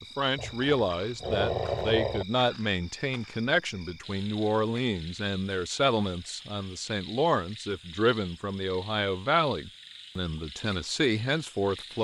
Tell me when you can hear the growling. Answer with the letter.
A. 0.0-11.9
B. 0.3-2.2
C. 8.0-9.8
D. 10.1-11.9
B.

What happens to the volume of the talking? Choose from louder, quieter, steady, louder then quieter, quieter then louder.
steady.